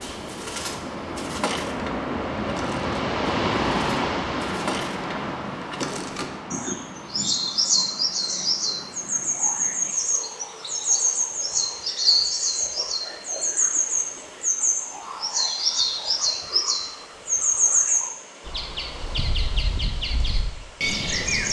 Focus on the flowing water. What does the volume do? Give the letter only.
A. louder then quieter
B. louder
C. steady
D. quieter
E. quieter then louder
D.